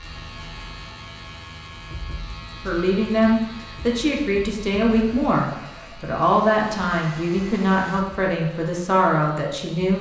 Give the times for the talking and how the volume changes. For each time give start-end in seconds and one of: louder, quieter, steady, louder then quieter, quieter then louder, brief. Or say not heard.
2.6-9.9 steady.